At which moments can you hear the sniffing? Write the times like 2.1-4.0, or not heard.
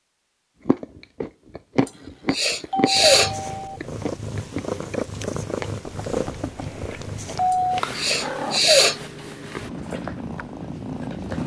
1.9-3.3, 7.5-8.9.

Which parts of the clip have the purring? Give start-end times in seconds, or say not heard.
2.9-11.4.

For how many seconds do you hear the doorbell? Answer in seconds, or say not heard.
3 s.